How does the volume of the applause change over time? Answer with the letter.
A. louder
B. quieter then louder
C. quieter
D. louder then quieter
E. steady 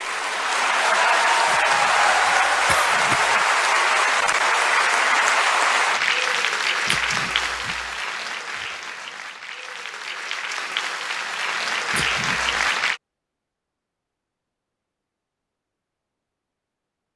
B.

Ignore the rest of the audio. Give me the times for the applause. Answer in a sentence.
The applause can be heard from 0.0 to 13.0 s.